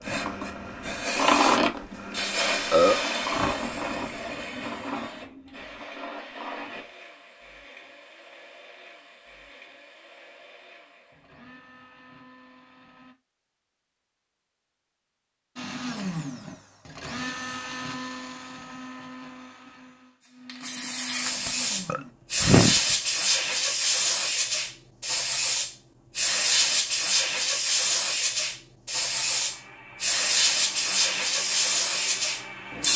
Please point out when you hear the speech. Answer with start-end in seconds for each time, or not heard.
not heard.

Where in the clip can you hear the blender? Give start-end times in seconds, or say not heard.
0.0-13.2, 15.6-22.1, 29.1-32.9.